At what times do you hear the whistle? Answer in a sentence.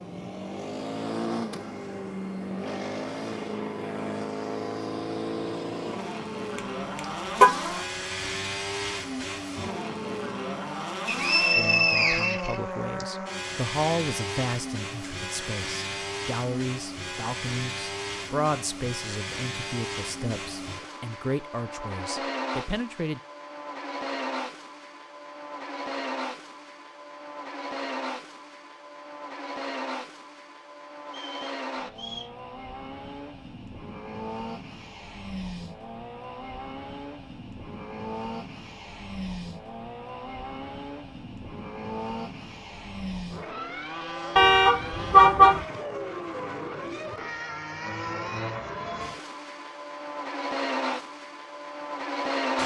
The whistle can be heard from 11.1 to 13.1 s and from 31.1 to 32.3 s.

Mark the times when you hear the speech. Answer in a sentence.
The speech can be heard from 11.6 to 23.2 s.